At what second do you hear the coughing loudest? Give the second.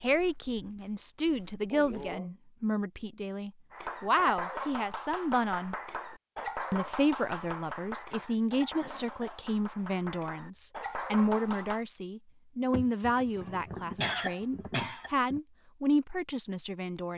14 s.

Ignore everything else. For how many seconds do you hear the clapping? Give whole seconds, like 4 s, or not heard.
8 s.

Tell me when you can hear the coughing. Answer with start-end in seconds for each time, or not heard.
1.7-2.4, 8.3-9.4, 12.7-15.4.